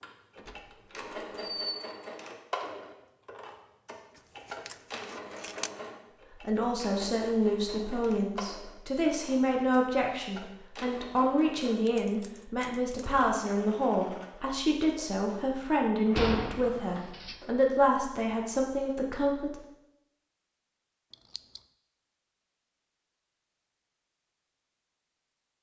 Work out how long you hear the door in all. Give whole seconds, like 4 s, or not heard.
3 s.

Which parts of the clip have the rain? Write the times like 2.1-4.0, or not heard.
not heard.